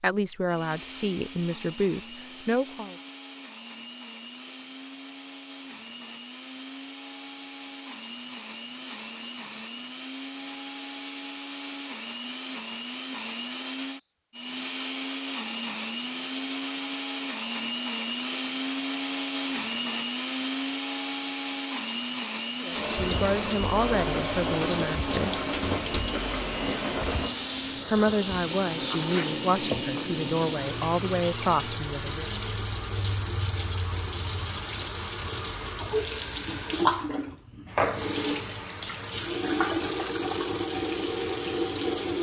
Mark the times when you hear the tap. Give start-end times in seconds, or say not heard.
22.7-42.1.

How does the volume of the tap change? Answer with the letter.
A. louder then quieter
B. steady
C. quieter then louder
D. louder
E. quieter
B.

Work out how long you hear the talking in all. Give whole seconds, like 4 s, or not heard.
10 s.